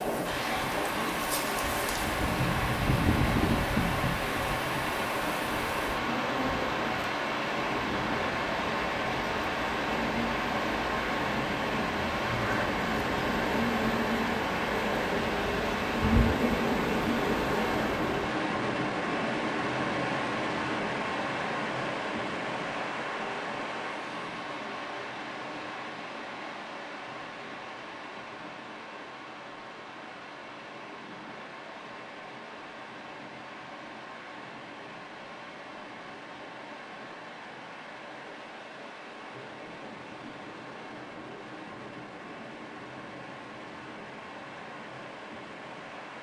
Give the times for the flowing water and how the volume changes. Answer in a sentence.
You can hear the flowing water from 0.0 to 46.1 s, getting quieter.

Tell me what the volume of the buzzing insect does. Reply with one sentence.
The loudness of the buzzing insect goes down, then up.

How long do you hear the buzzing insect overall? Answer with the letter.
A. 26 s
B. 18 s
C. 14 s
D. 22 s
B.